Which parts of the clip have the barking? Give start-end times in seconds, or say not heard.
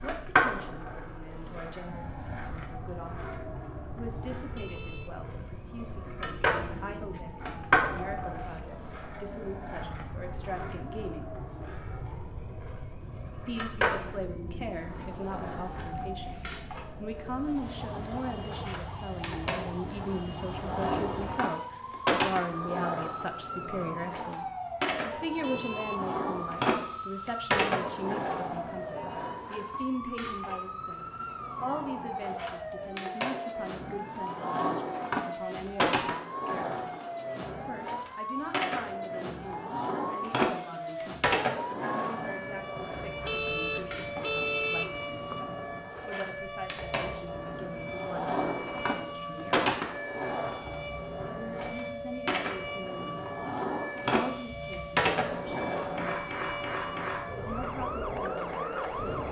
not heard.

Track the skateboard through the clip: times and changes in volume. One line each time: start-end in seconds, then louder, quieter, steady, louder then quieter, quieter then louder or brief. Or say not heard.
0.0-59.2 steady.